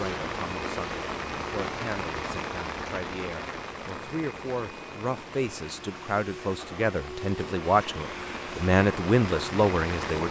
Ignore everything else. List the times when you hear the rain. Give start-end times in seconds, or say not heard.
0.0-10.2.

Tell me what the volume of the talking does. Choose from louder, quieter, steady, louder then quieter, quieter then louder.
louder.